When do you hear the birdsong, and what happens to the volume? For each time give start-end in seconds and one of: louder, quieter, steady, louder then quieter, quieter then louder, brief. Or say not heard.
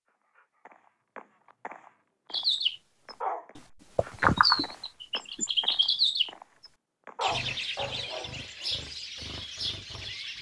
2.3-10.3 louder then quieter.